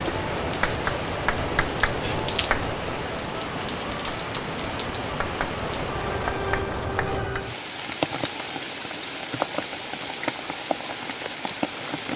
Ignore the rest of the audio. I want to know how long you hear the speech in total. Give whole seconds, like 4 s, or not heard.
not heard.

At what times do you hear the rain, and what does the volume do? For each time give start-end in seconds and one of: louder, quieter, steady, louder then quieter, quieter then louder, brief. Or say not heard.
0.0-12.1 steady.